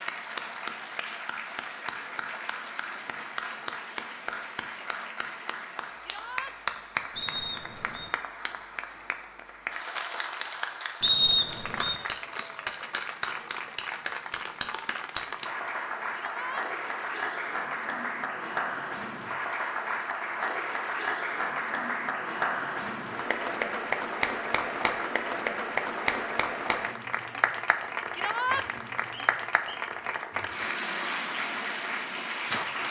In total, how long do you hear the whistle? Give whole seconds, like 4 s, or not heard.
3 s.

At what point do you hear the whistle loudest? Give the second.
11 s.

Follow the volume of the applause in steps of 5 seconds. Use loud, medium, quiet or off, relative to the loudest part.
medium, medium, medium, loud, loud, loud, loud.